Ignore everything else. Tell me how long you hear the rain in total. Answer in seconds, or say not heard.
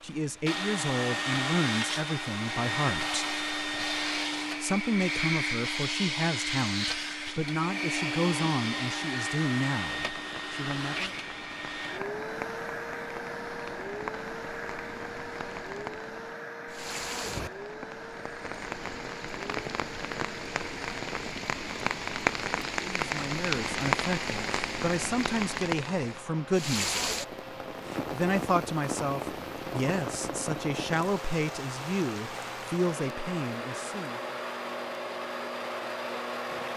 27 s.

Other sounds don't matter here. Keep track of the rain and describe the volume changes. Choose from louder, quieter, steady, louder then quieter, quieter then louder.
louder then quieter.